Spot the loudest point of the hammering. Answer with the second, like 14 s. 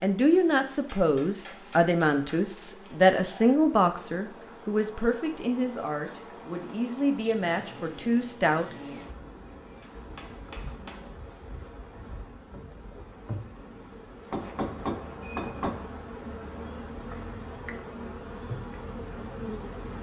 15 s.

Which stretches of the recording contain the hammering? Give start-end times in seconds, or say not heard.
0.8-2.4, 9.6-11.2, 14.3-15.8.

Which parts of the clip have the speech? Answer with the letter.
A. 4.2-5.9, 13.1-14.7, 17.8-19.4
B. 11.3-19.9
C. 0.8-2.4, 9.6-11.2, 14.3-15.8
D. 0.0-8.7
D.